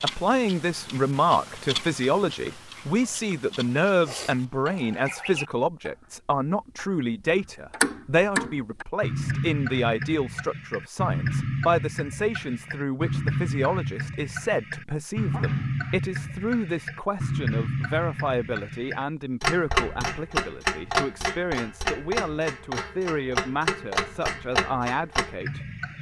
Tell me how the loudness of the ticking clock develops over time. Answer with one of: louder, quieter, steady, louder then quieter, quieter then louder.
louder.